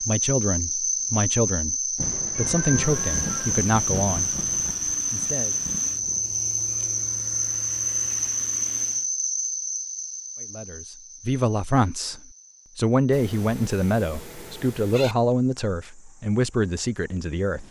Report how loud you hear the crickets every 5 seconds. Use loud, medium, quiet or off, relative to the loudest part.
loud, loud, quiet, quiet.